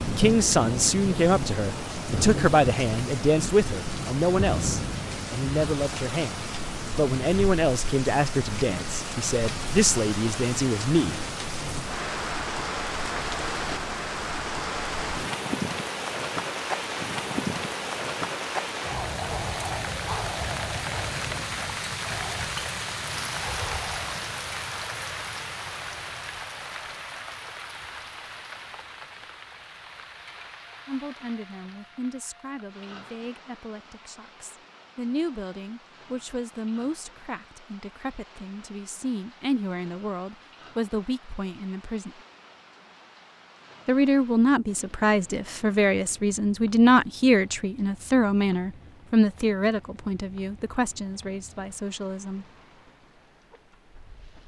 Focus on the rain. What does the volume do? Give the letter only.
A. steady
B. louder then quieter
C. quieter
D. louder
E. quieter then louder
C.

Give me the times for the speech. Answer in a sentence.
You can hear the speech from 0.1 to 11.2 s, from 30.9 to 42.1 s and from 43.9 to 52.5 s.